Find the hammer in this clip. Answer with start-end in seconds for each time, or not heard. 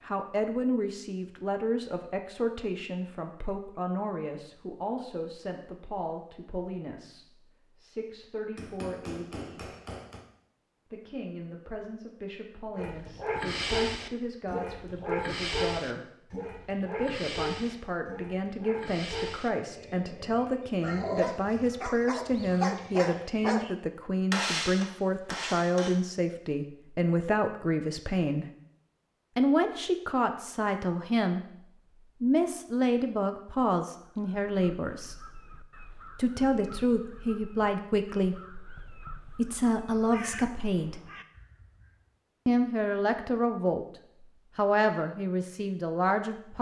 8.6-10.2, 24.3-25.9.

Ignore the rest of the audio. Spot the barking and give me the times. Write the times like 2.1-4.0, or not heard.
12.8-23.8.